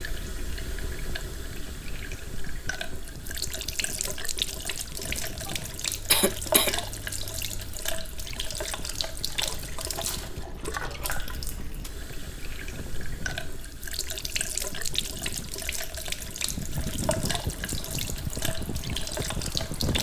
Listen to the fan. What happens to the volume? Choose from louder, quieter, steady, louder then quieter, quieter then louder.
louder.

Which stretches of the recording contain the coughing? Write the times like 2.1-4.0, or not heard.
5.5-6.8.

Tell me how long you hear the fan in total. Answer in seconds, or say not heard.
20 s.